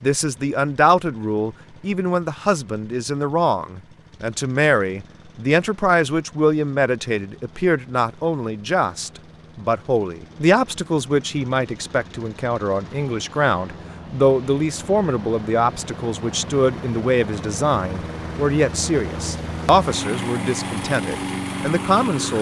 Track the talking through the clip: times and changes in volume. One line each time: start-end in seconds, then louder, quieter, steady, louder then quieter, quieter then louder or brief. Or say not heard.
0.0-22.3 steady.